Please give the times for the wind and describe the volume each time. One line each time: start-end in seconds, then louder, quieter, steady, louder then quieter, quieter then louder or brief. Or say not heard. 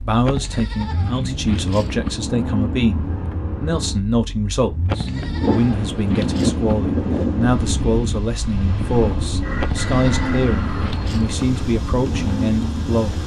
5.4-13.2 quieter.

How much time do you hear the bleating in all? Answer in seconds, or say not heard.
6 s.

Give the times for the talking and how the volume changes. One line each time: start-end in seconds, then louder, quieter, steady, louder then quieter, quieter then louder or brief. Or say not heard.
0.0-13.2 steady.